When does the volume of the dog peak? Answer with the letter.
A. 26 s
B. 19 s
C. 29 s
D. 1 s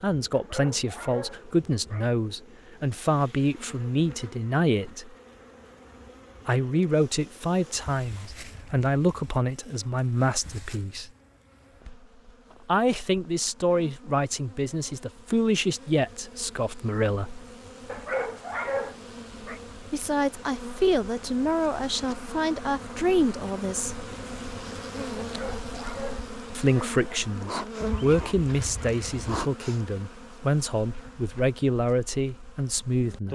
B.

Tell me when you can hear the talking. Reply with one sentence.
You can hear the talking from 0.0 to 5.2 s, from 6.5 to 11.1 s, from 12.7 to 17.4 s, from 19.9 to 24.0 s and from 26.6 to 33.3 s.